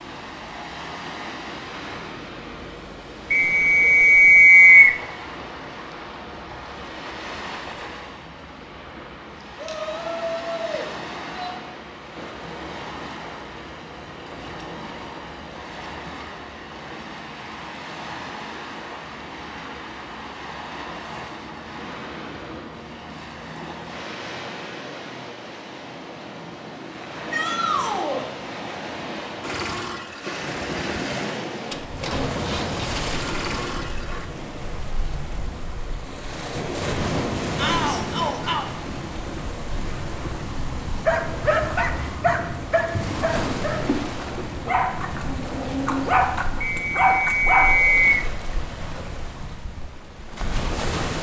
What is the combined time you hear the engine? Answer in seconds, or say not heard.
5 s.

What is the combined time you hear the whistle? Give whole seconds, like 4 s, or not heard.
3 s.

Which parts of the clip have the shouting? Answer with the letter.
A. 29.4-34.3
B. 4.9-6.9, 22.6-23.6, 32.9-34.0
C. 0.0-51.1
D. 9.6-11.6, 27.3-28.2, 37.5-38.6
D.